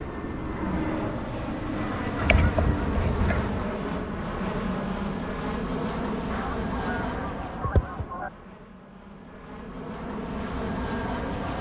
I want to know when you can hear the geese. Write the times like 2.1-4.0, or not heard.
2.1-3.6, 6.3-8.3.